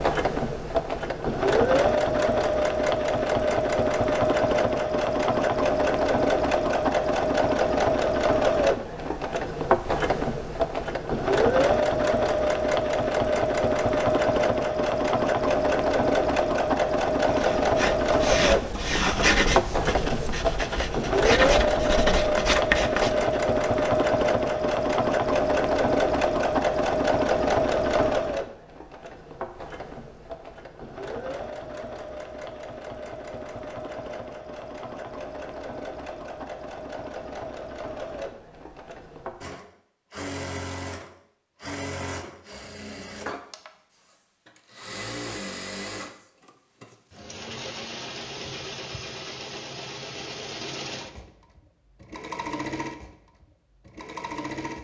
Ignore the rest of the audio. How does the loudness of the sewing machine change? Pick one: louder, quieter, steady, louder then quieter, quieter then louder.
quieter.